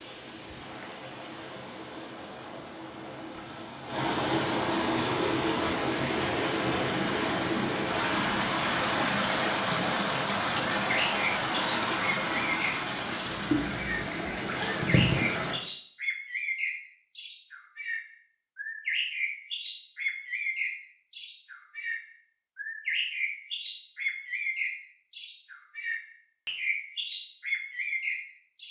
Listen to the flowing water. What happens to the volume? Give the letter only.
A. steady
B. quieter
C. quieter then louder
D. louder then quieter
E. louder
E.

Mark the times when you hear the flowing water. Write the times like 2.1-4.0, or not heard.
0.0-15.6.